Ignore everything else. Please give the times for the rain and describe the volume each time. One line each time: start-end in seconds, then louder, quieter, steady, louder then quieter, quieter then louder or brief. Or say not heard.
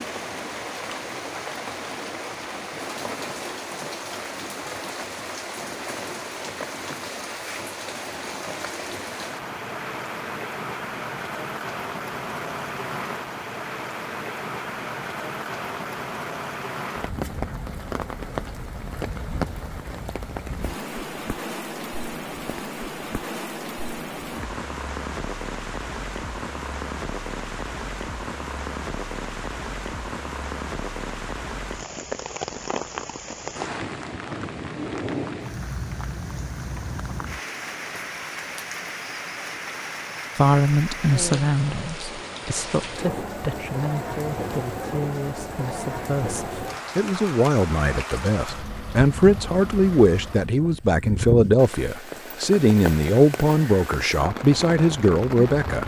0.0-55.8 steady.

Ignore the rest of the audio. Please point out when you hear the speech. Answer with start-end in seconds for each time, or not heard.
40.4-55.8.